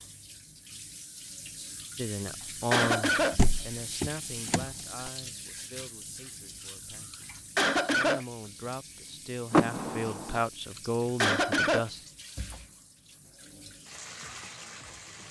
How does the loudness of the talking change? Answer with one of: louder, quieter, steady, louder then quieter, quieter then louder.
quieter then louder.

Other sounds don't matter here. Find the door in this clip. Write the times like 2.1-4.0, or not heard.
3.3-5.1, 9.5-10.4.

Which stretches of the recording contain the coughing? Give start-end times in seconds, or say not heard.
2.2-3.4, 7.1-8.2, 10.8-11.8.